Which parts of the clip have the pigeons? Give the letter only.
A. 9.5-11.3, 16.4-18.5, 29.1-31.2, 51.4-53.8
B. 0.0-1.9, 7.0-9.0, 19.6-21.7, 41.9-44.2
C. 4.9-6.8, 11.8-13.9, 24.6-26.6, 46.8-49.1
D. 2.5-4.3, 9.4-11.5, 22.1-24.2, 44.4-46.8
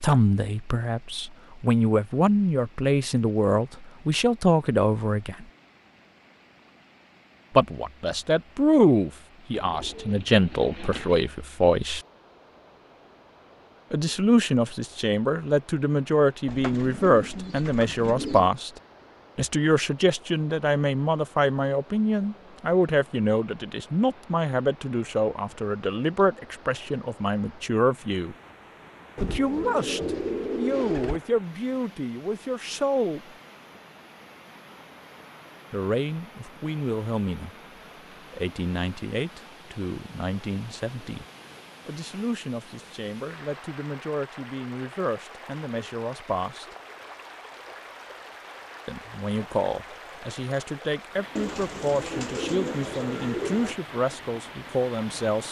A.